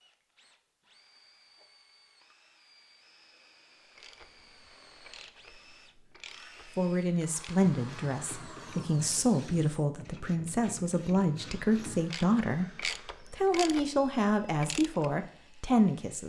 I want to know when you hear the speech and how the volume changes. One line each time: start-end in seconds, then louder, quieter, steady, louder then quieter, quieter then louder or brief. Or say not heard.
6.8-16.2 steady.